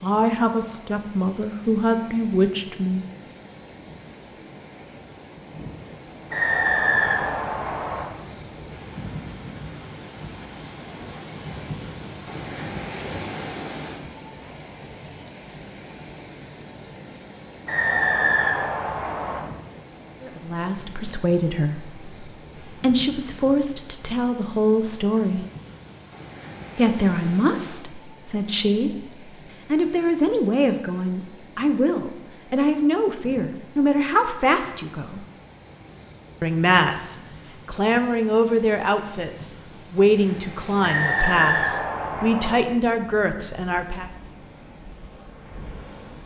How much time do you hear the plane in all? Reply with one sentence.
The plane can't be heard in this clip.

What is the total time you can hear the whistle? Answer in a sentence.
The whistle can be heard for 5 seconds in total.